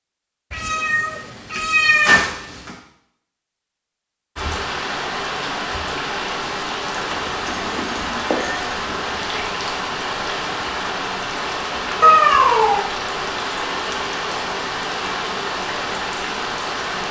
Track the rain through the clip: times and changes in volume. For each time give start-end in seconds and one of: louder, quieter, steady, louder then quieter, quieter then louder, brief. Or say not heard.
4.3-17.0 steady.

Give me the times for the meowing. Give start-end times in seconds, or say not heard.
0.5-2.8, 7.0-9.4, 12.0-12.8.